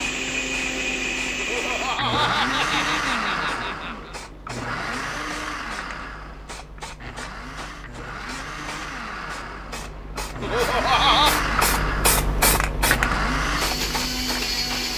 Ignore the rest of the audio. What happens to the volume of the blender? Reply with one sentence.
The loudness of the blender goes down, then up.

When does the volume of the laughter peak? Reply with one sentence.
The loudest moment of the laughter is at 11 seconds.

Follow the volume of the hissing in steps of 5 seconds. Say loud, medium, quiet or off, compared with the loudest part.
quiet, quiet, loud.